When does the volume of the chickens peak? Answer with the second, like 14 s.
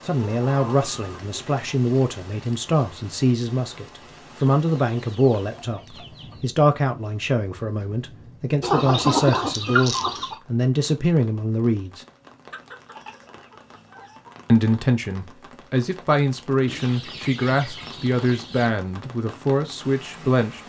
9 s.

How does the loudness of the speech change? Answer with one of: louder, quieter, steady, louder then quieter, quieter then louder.
steady.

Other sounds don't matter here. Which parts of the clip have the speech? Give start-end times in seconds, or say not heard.
0.1-12.1, 14.4-20.6.